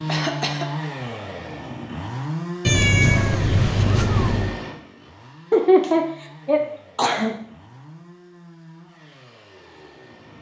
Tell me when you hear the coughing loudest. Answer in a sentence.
The volume of the coughing peaks at 6 seconds.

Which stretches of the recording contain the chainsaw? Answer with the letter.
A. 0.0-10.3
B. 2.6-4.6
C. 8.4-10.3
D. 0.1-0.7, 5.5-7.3
A.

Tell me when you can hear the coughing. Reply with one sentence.
The coughing can be heard from 0.1 to 0.7 s and from 5.5 to 7.3 s.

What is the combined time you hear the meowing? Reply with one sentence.
The meowing can be heard for 2 seconds in total.